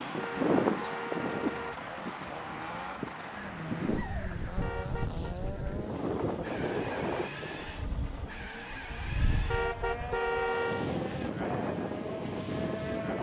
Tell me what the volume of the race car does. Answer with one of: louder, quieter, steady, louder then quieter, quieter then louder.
steady.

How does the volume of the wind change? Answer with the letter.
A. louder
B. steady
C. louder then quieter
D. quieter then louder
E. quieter
D.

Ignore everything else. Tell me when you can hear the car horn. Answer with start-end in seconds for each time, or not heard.
0.1-1.8, 4.6-5.2, 9.5-10.9.